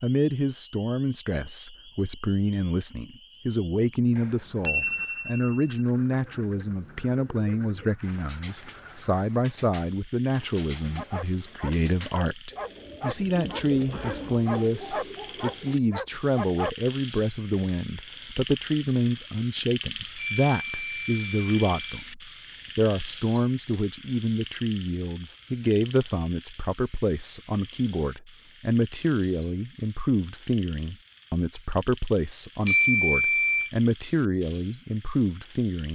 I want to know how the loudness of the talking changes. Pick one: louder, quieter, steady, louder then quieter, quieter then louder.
steady.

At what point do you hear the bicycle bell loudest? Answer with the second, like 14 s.
33 s.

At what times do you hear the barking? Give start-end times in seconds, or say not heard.
10.9-16.7.